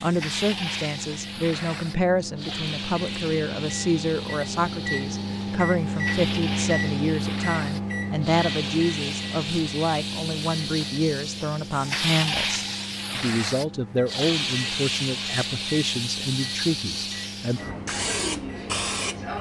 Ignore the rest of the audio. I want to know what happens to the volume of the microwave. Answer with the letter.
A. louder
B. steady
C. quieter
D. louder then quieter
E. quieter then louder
D.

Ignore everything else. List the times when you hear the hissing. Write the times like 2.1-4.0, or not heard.
0.0-19.3.